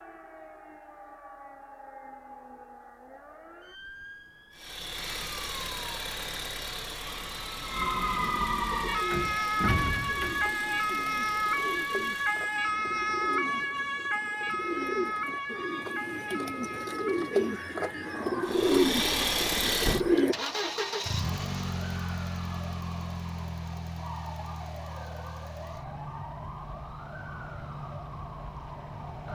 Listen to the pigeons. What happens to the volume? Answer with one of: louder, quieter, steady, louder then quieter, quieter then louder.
louder.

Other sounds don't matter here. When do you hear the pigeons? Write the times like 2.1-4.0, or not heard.
8.7-20.4.